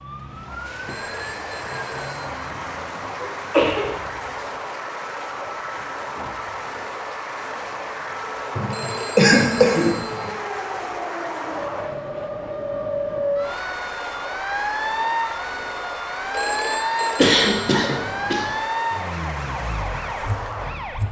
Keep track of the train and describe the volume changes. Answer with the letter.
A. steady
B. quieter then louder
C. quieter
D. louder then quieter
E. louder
A.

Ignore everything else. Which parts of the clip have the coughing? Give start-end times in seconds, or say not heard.
3.2-3.9, 8.6-10.3, 17.1-18.5.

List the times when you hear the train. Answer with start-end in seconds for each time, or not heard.
0.0-21.0.